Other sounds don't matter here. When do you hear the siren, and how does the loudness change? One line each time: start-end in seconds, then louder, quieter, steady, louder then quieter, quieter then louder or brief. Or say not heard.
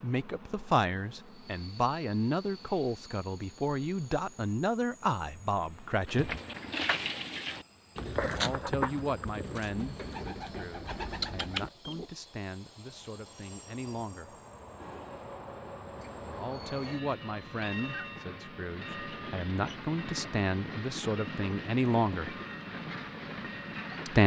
not heard.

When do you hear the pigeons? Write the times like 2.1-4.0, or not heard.
6.0-12.1.